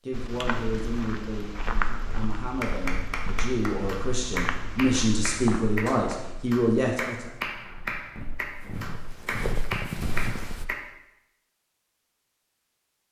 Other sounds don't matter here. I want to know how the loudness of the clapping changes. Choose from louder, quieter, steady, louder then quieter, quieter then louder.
steady.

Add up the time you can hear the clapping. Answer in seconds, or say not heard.
8 s.